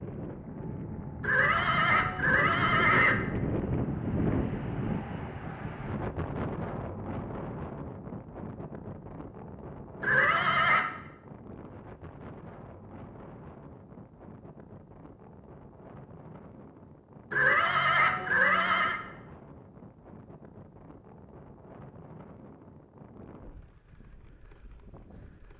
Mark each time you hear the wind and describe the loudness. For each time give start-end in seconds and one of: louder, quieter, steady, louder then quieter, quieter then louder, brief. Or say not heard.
0.0-25.5 quieter.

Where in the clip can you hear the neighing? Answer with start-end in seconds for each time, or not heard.
1.2-3.1, 10.0-10.9, 17.3-19.0.